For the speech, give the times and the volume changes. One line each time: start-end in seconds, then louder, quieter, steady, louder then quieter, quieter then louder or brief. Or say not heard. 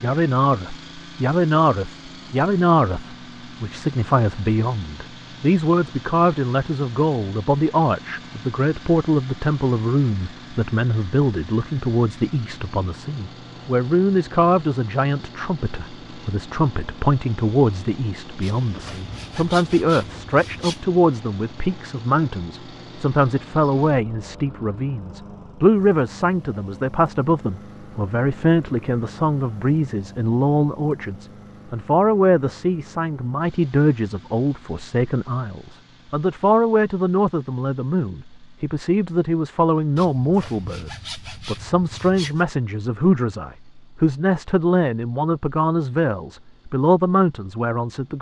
0.0-48.1 steady.